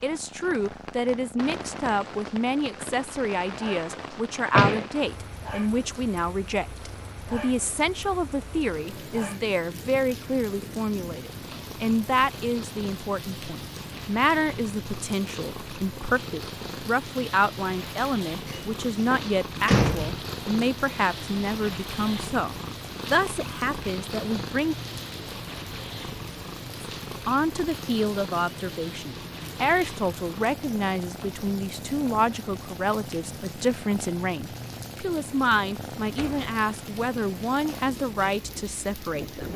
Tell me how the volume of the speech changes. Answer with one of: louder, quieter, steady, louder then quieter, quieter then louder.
steady.